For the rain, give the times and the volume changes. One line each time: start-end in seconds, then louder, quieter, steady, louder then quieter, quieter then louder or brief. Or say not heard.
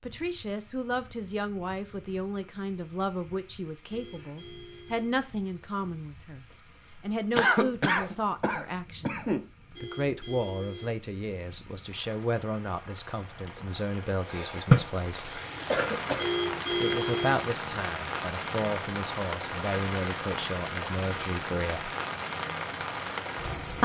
0.0-23.8 louder.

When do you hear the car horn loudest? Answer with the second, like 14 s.
17 s.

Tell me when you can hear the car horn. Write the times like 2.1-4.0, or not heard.
3.9-5.1, 9.7-11.1, 16.1-17.5.